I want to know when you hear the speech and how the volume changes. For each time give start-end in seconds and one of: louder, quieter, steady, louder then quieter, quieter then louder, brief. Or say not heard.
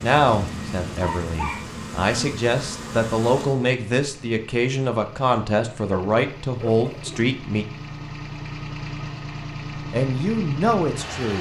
0.0-7.7 louder
9.9-11.3 brief.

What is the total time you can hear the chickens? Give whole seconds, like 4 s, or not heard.
not heard.